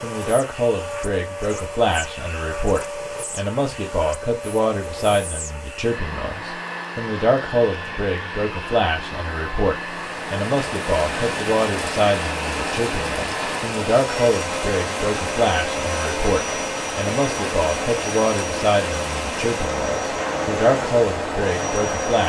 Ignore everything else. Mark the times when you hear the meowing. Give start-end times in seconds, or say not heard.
not heard.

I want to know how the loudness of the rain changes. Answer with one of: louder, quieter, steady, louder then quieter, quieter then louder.
steady.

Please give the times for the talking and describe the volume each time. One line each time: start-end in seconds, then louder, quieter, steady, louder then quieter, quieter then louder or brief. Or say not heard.
0.0-22.2 steady.